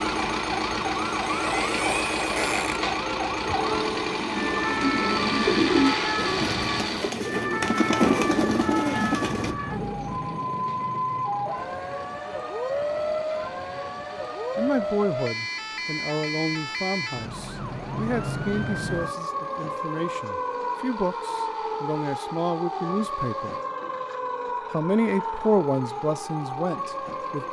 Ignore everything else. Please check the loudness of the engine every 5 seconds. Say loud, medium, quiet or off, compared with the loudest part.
loud, loud, quiet, quiet, quiet, quiet.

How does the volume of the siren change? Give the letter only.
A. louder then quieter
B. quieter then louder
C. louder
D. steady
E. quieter
D.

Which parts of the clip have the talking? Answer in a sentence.
The talking can be heard from 14.6 to 23.6 s and from 24.7 to 27.4 s.